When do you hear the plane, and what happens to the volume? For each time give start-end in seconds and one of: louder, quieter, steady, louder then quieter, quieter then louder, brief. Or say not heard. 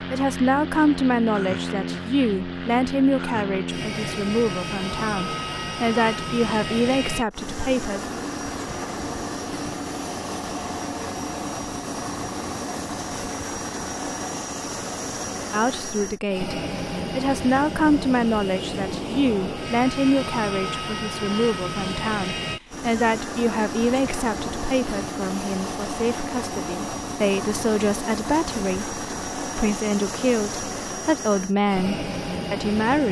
0.0-33.0 steady.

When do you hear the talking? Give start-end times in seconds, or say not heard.
0.1-8.0, 15.5-33.0.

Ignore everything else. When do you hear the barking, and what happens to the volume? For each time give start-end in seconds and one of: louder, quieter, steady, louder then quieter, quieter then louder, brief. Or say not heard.
not heard.